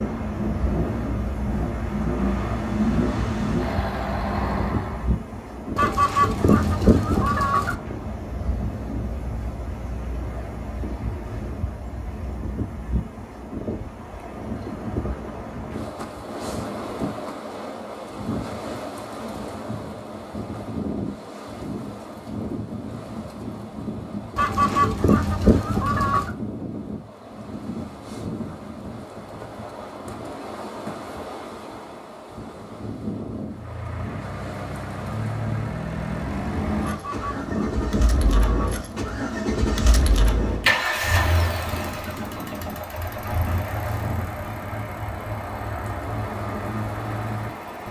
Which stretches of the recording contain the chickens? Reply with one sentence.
You can hear the chickens from 5.8 to 7.8 s, from 24.4 to 26.3 s and from 36.8 to 38.9 s.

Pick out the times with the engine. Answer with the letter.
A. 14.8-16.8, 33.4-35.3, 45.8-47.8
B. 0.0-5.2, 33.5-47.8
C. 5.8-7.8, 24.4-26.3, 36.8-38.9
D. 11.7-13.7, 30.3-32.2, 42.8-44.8
B.